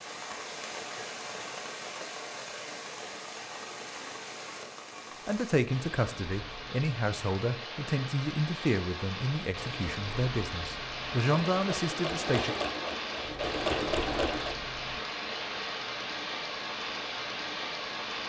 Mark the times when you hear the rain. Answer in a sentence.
The rain can be heard from 0.0 to 18.2 s.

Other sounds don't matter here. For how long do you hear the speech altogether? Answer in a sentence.
The speech can be heard for 7 seconds in total.